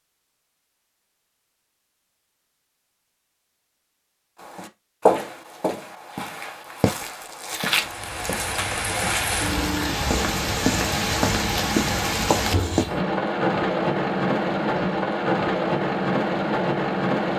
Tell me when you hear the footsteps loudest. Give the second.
5 s.